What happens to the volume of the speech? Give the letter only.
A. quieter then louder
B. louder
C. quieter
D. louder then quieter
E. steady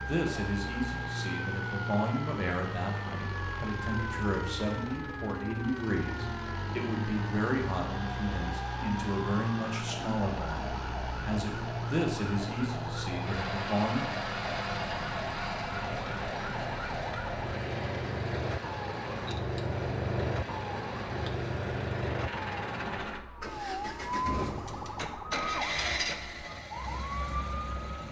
E.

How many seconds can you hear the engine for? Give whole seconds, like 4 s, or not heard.
28 s.